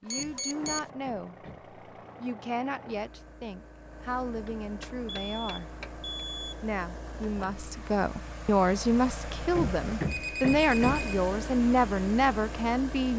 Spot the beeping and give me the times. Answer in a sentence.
The beeping can be heard from 0.1 to 0.9 s, from 5.0 to 6.6 s and from 10.1 to 11.2 s.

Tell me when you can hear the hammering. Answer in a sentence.
The hammering can be heard from 0.0 to 1.7 s, from 4.5 to 6.0 s and from 9.4 to 11.1 s.